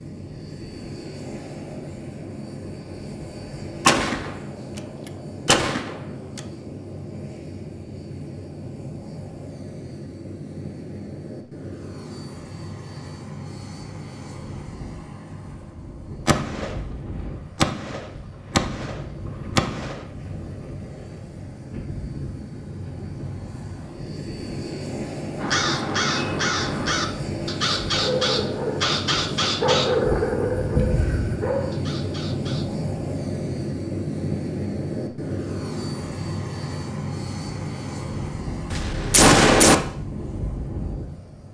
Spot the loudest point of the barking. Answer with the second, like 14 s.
30 s.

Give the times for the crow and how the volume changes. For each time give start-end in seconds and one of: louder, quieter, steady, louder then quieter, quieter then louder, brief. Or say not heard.
25.4-32.9 quieter.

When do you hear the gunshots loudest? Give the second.
39 s.